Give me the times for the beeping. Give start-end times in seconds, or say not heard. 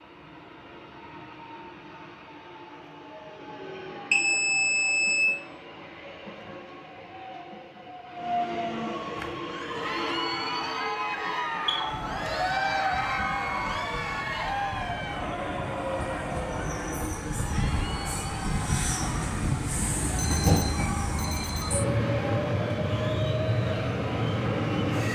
4.1-5.2, 11.7-12.5, 20.1-21.9.